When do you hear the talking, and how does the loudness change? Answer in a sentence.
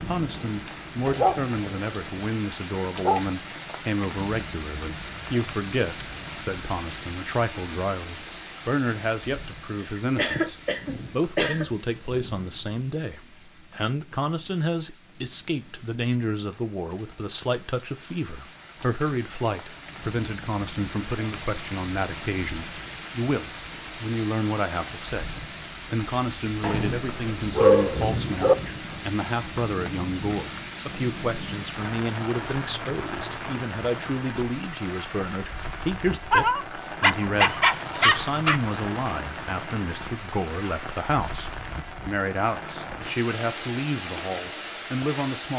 The talking can be heard from 0.1 to 45.5 s, at a steady volume.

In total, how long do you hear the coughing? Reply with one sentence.
The coughing can be heard for 2 seconds in total.